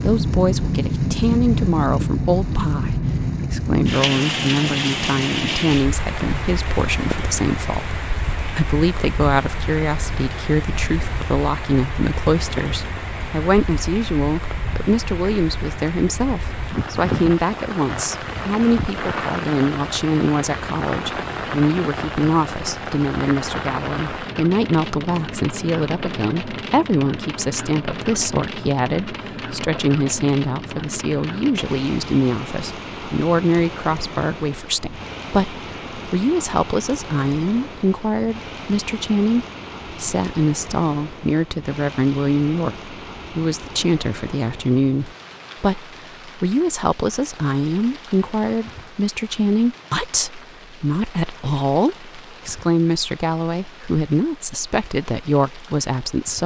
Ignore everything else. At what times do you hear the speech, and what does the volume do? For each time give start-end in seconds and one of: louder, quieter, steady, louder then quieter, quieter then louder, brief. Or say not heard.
0.0-56.4 steady.